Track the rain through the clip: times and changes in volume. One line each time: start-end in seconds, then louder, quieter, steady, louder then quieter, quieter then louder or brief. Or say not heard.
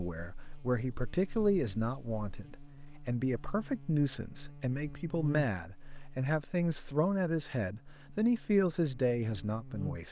not heard.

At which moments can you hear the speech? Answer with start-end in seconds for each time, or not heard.
0.0-10.0.